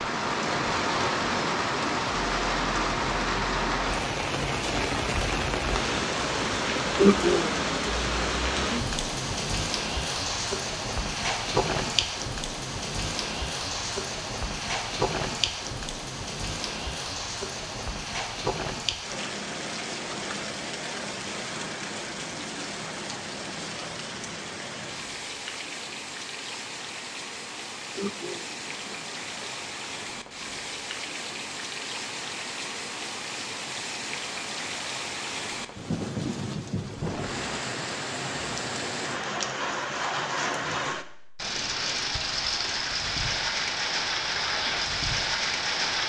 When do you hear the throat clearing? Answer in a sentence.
You can hear the throat clearing from 7.0 to 7.7 s and from 27.9 to 29.5 s.